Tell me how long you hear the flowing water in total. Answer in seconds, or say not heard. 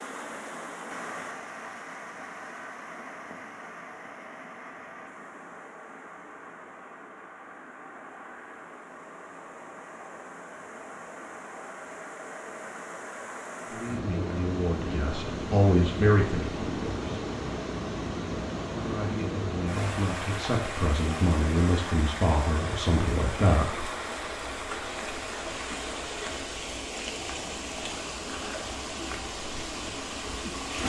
31 s.